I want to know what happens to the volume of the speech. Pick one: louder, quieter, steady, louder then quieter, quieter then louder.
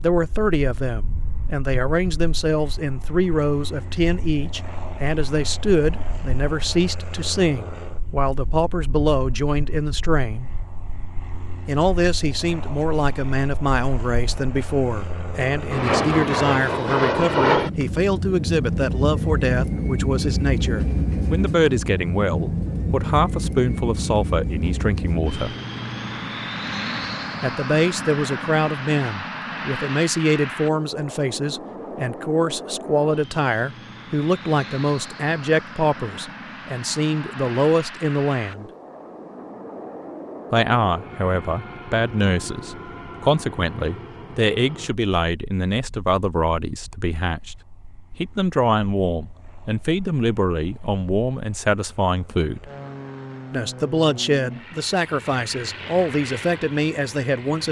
steady.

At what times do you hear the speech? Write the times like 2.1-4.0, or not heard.
0.0-10.5, 11.7-25.6, 27.4-38.7, 40.5-47.6, 48.2-52.7, 53.5-57.6.